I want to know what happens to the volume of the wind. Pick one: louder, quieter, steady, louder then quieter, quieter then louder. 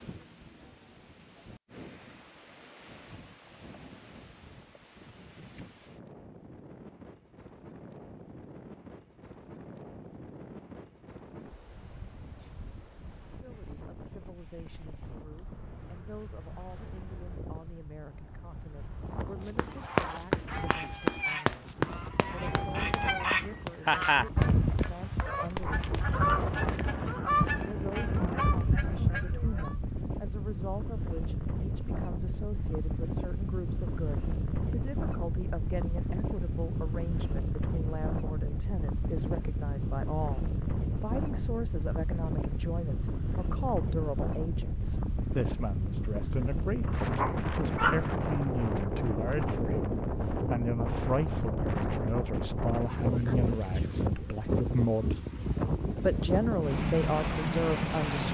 louder.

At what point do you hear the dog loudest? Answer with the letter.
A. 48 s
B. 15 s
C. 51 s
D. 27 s
A.